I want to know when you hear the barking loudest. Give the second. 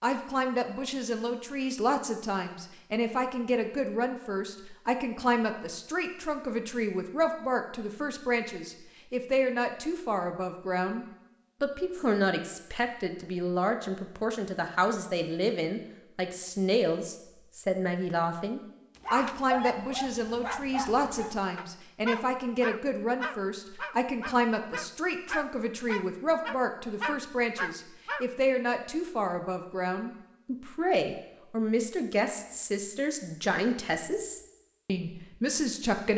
20 s.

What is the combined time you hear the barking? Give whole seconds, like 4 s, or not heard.
9 s.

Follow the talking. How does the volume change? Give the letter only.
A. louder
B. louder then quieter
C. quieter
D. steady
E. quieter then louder
D.